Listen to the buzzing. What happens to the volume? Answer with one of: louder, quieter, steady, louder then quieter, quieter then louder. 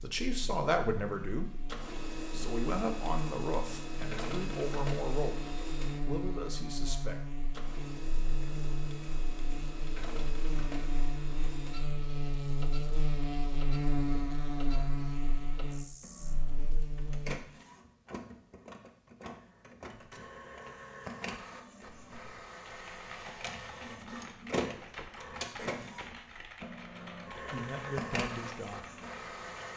louder.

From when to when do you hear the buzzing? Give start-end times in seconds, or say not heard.
0.0-17.4.